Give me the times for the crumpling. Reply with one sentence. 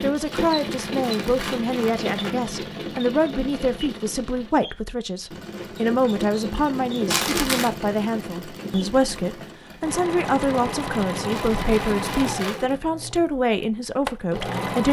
You can hear the crumpling from 0.3 to 2.4 s, from 7.1 to 7.8 s and from 11.3 to 12.8 s.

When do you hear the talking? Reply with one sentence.
You can hear the talking from 0.0 to 14.8 s.